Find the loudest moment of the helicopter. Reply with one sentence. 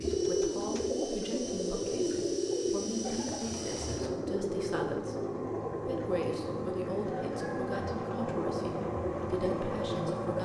The volume of the helicopter peaks at 10 seconds.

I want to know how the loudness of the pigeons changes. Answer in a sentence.
The loudness of the pigeons goes down.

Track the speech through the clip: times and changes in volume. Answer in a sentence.
You can hear the speech from 0.0 to 10.4 s, at a steady volume.